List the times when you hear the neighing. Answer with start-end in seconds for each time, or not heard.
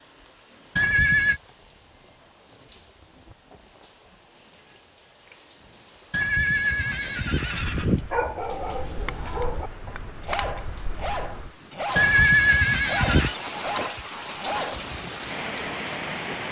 0.8-1.4, 6.1-8.1, 11.9-13.3.